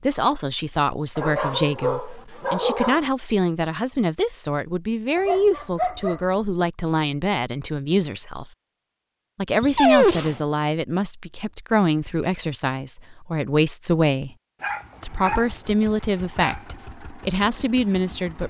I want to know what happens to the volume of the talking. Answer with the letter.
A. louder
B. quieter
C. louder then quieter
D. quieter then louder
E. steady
E.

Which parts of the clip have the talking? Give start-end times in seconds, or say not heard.
0.0-8.4, 9.3-14.3, 15.0-18.4.